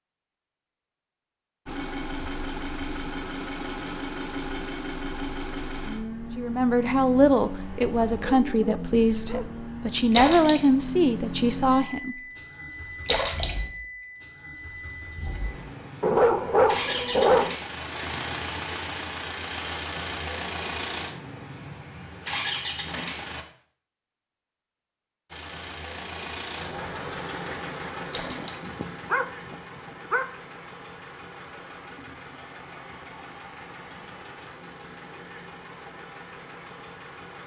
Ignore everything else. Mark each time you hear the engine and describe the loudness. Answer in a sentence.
The engine can be heard from 1.6 to 23.4 s, at a steady volume; and from 25.3 to 37.4 s, getting quieter.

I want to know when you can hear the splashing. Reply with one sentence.
The splashing can be heard from 10.1 to 10.6 s, from 13.1 to 13.6 s and from 28.1 to 28.6 s.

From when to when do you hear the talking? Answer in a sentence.
You can hear the talking from 6.3 to 12.2 s.